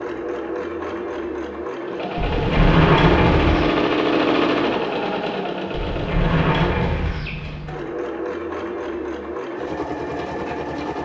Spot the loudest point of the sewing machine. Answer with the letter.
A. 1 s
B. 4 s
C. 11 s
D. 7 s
B.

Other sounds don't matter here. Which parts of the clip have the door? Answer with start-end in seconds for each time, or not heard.
2.1-3.6, 5.7-7.8.